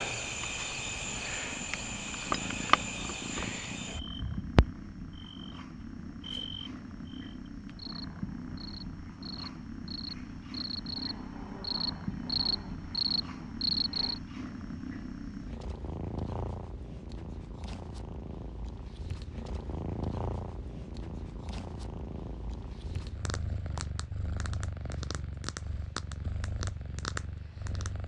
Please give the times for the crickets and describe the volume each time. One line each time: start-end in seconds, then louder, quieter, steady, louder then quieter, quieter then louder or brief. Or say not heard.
0.0-14.2 quieter then louder.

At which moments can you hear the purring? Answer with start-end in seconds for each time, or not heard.
0.0-28.0.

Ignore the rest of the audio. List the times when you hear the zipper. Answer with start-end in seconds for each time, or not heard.
not heard.